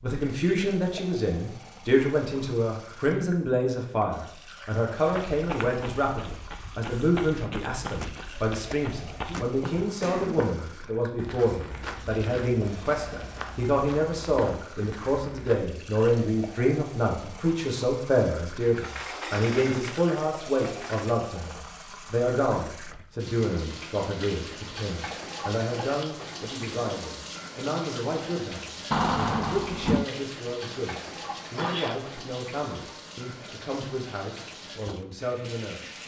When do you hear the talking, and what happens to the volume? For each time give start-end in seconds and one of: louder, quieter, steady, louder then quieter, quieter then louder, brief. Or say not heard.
0.0-36.0 quieter.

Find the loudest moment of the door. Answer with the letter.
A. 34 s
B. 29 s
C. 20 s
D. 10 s
B.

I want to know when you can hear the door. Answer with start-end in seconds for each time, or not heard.
7.8-10.1, 18.6-21.2, 28.9-30.1.